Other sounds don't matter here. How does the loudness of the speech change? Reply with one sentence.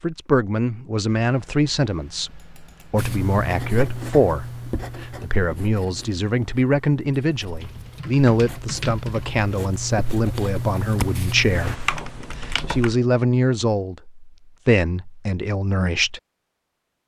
The volume of the speech stays about the same.